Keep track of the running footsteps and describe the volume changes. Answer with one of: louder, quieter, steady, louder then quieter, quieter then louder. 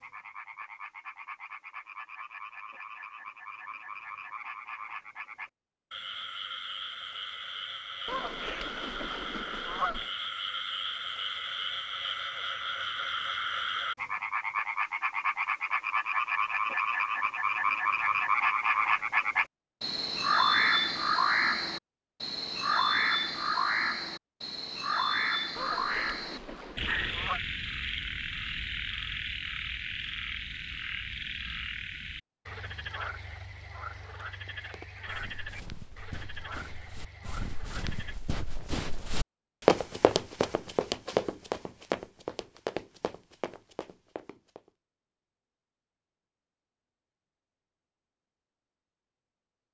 louder then quieter.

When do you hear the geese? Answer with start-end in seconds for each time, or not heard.
8.1-10.1, 25.6-27.4.